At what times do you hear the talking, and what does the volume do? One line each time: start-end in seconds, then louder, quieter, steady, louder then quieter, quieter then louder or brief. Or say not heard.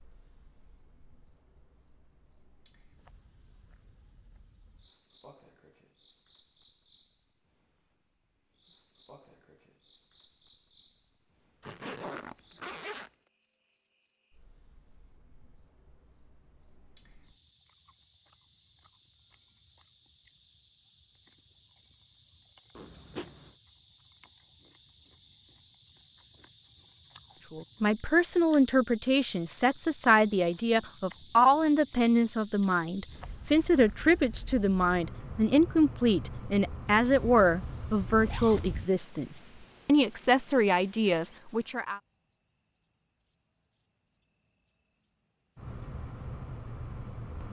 27.5-42.0 steady.